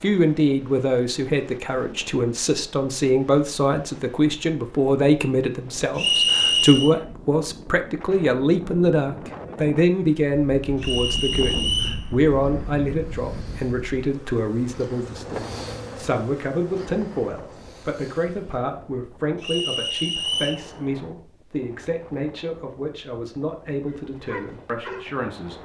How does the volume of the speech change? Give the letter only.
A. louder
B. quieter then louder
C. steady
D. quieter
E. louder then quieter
D.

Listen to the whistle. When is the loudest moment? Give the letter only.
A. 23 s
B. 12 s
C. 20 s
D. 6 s
D.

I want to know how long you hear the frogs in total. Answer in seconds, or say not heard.
not heard.